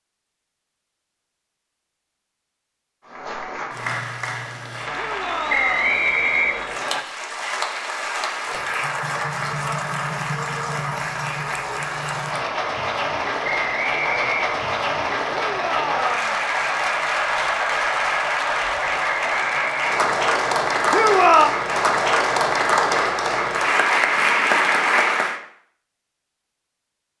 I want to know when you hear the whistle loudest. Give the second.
6 s.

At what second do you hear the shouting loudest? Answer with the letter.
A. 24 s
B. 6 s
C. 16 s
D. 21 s
D.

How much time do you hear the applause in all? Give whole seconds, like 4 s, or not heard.
22 s.